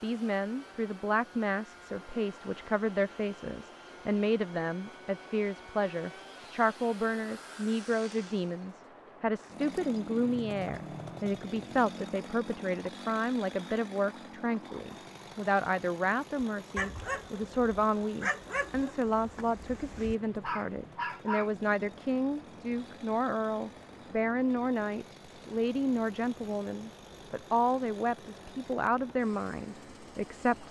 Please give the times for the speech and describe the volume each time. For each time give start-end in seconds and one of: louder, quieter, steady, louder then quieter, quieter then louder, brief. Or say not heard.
0.0-30.6 steady.